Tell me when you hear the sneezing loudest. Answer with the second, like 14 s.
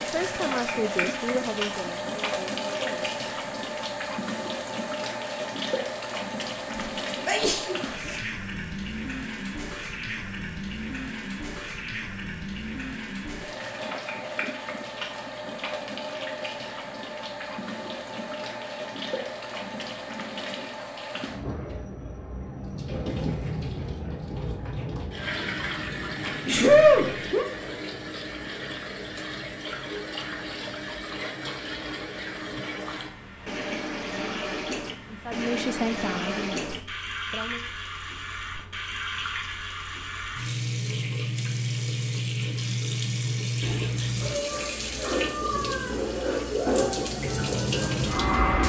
27 s.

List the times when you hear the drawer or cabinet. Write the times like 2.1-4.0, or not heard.
not heard.